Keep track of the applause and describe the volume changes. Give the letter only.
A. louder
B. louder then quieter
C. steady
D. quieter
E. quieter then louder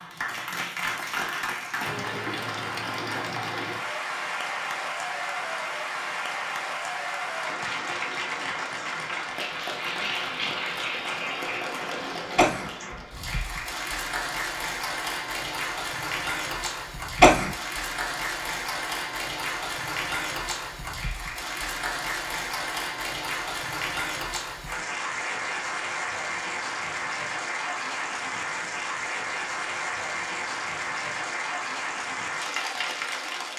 C.